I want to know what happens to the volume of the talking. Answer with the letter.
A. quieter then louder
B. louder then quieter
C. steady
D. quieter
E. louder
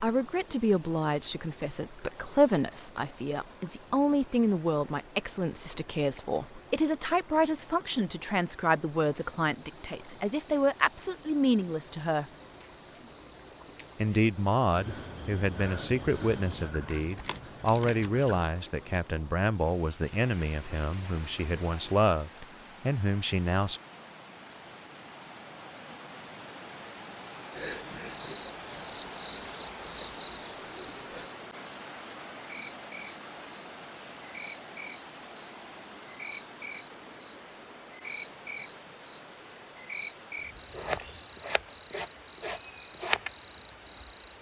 C.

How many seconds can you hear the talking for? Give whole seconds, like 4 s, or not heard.
22 s.